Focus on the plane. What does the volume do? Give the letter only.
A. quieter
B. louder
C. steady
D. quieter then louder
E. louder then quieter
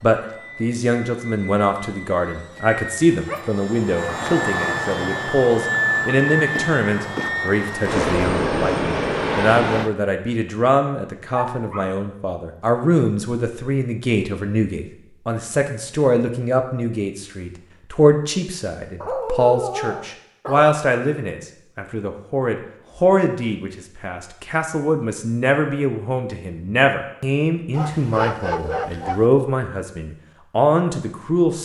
B.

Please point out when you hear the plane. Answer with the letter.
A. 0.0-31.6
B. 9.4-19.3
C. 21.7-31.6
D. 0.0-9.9
D.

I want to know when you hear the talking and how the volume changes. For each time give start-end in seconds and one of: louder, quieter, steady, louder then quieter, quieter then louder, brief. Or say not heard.
0.0-31.6 steady.